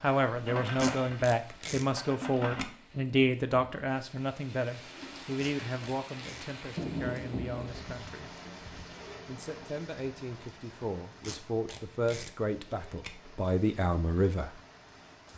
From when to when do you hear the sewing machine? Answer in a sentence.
You can hear the sewing machine from 0.0 to 2.6 s.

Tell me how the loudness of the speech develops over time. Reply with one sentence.
The loudness of the speech goes down, then up.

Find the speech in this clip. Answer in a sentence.
The speech can be heard from 0.0 to 8.3 s and from 9.2 to 14.6 s.